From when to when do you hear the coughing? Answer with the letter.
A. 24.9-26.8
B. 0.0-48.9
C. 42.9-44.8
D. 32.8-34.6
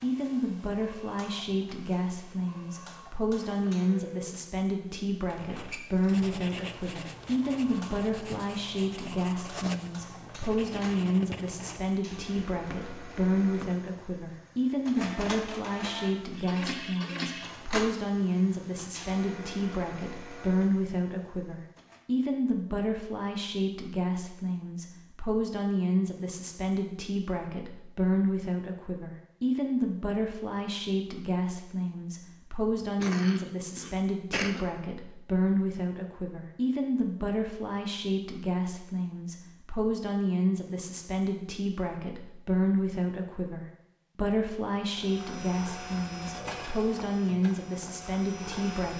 D.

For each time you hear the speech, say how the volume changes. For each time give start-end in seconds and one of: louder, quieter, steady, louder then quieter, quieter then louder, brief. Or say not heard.
0.0-48.9 steady.